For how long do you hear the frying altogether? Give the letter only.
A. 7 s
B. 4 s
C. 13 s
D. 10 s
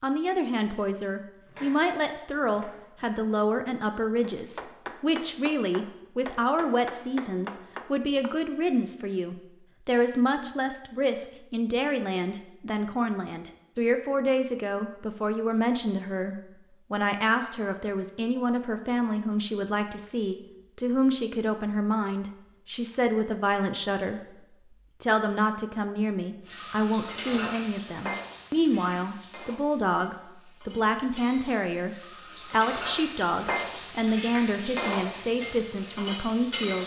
D.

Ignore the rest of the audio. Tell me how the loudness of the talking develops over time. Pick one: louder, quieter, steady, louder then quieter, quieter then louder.
steady.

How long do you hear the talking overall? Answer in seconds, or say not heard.
36 s.